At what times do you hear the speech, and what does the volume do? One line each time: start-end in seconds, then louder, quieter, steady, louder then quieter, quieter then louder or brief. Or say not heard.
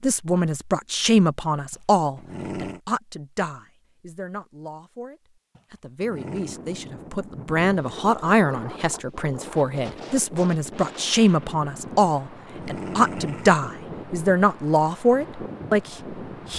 0.0-16.5 quieter then louder.